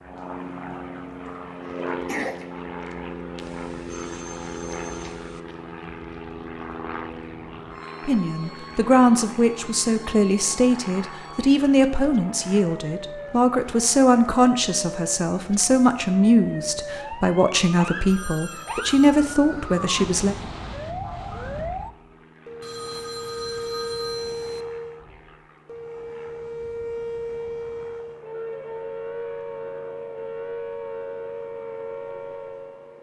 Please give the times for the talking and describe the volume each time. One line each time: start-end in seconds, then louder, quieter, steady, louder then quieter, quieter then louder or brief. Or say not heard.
8.1-20.4 steady.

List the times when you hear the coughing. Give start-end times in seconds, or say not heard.
1.6-2.5.